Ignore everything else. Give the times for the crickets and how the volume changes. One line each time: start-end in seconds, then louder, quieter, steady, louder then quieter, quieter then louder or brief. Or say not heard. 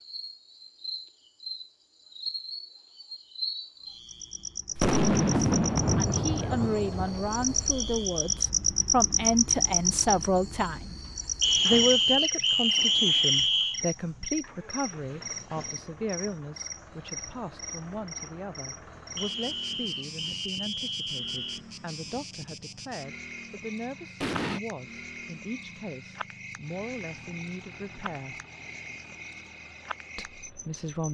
0.0-31.0 louder then quieter.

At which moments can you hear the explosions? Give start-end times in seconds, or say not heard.
4.8-8.1, 24.2-24.6.